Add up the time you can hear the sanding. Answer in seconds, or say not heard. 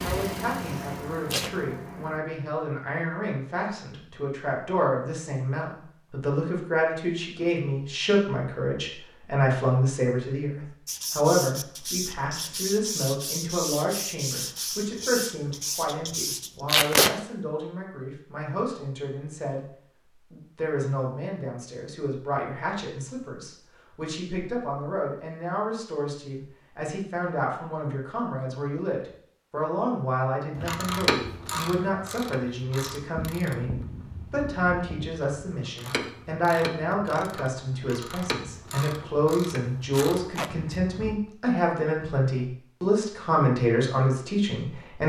6 s.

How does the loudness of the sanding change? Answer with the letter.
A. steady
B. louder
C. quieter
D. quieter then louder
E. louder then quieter
A.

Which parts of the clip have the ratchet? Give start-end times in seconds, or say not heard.
30.6-41.1.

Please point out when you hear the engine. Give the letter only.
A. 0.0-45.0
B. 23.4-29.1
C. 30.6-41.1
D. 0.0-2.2
D.